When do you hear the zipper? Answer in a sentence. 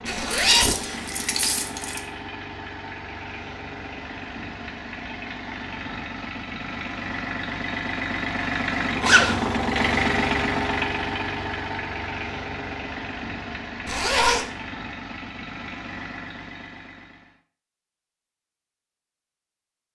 The zipper can be heard from 0.1 to 0.8 s, from 9.0 to 9.6 s and from 13.8 to 14.4 s.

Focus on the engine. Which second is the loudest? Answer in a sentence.
The loudest moment of the engine is at 10 seconds.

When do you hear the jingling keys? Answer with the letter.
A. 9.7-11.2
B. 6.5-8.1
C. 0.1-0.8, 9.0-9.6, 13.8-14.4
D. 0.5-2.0
D.